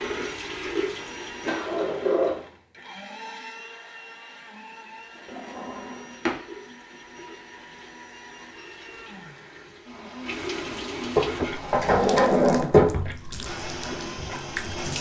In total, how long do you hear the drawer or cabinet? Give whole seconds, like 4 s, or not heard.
4 s.